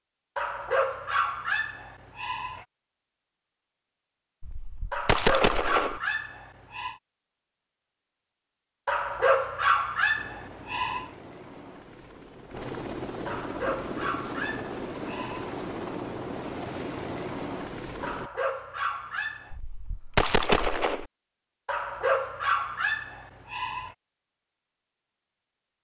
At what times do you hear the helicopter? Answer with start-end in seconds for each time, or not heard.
10.2-18.3.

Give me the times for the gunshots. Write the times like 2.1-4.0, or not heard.
4.4-6.0, 19.5-21.1.